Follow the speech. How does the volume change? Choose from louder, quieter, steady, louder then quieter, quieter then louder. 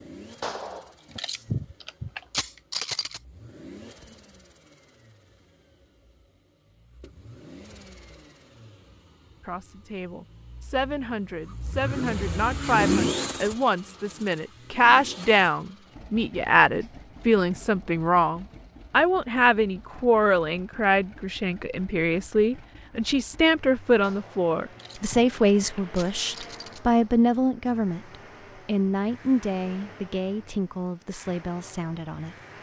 louder then quieter.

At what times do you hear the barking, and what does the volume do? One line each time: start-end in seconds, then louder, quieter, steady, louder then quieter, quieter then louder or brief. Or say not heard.
not heard.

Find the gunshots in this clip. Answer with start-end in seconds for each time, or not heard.
0.4-3.2, 24.0-26.8.